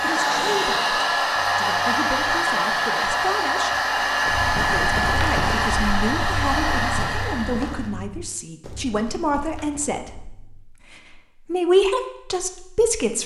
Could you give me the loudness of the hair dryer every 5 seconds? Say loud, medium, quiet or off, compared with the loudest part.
loud, loud, off.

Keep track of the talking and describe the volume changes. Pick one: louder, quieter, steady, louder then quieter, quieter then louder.
louder.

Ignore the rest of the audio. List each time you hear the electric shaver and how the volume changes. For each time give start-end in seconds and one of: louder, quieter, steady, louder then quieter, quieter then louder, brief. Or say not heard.
not heard.